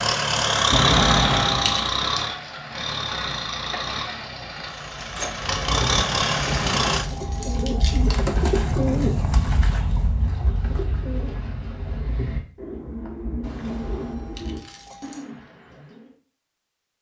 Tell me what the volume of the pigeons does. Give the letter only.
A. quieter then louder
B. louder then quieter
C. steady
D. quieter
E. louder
B.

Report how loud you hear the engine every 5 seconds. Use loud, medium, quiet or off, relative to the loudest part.
loud, loud, off, off.